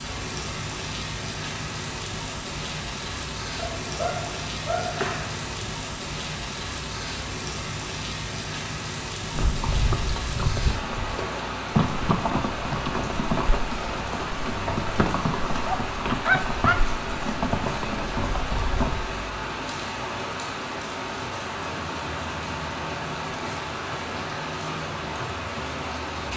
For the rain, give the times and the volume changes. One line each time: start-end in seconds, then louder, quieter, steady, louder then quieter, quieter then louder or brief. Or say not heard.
0.0-26.3 steady.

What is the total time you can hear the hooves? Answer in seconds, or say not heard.
10 s.